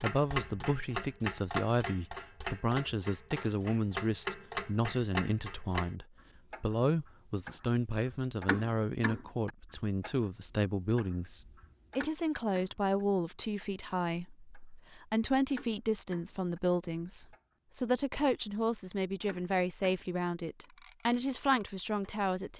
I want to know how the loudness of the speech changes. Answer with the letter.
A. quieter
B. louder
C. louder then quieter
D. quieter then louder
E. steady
E.